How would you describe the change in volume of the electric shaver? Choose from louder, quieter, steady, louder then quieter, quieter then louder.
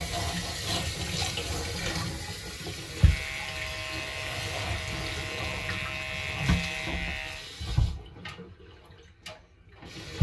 steady.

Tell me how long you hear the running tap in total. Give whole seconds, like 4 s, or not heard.
10 s.